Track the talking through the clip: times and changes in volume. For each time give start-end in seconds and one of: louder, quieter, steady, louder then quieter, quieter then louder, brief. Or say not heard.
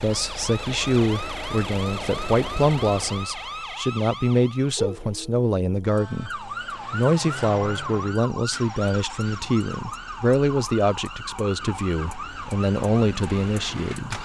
0.0-14.1 steady.